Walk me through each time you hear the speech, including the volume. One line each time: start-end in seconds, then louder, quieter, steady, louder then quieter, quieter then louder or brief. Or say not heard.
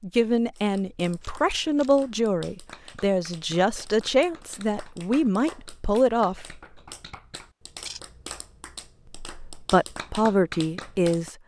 0.0-6.6 steady
9.2-11.3 brief.